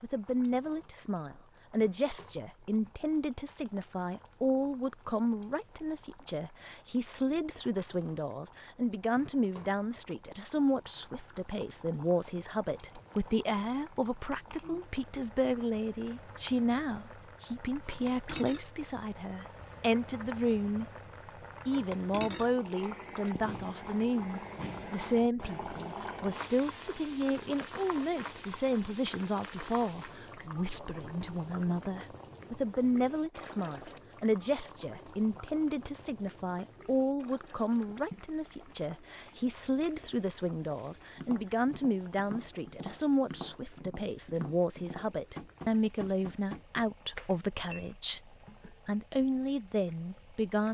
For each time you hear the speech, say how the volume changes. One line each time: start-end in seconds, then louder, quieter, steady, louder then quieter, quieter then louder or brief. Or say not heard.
0.0-20.9 steady
21.6-50.6 steady.